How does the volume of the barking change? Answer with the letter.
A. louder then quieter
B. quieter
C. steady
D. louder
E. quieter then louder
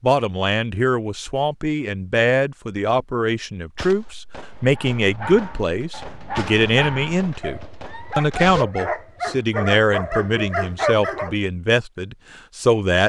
D.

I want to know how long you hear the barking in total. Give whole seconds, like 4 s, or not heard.
7 s.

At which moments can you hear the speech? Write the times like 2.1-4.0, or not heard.
0.0-13.0.